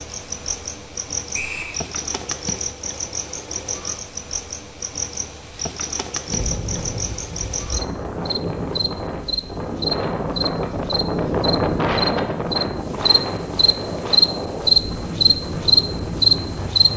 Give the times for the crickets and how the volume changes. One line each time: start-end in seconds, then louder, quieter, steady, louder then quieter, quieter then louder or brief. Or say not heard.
0.0-16.9 louder.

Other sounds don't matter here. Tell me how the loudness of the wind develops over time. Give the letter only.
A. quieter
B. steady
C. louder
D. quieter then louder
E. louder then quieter
E.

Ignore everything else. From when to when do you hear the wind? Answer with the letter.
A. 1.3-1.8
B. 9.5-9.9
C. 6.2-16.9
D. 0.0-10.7
C.